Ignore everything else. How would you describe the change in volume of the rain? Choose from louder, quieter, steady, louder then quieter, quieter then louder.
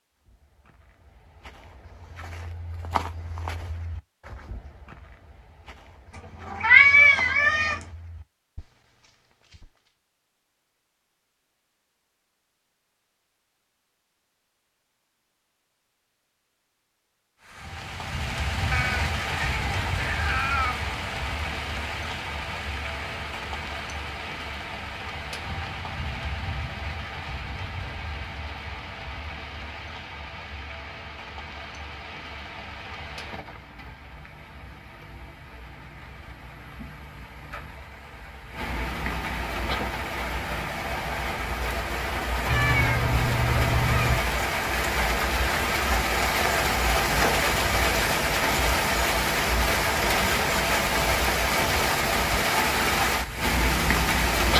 quieter then louder.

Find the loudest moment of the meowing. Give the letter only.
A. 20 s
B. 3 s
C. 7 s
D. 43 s
C.